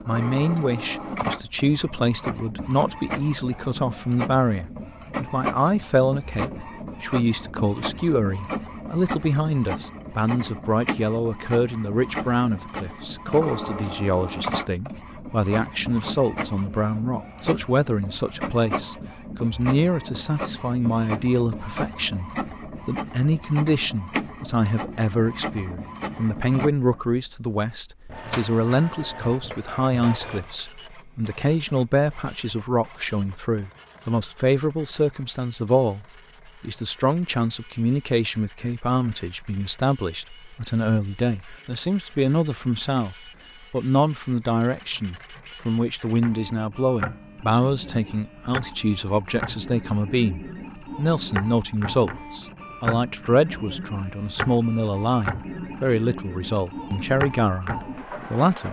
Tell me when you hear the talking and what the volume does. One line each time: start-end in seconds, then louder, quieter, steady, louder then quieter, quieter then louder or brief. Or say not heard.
0.1-58.6 steady.